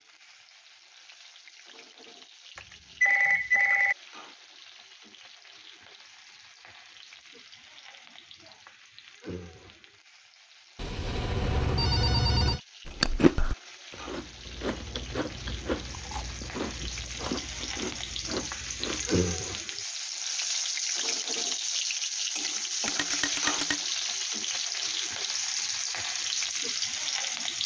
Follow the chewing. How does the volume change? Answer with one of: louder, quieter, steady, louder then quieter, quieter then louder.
quieter.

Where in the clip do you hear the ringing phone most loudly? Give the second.
3 s.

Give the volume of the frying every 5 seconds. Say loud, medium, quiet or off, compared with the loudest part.
quiet, quiet, quiet, medium, loud, loud.